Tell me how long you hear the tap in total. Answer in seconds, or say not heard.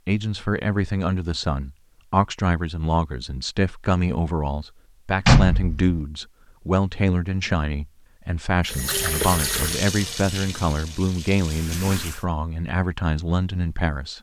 4 s.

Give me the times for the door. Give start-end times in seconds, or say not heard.
5.2-6.0.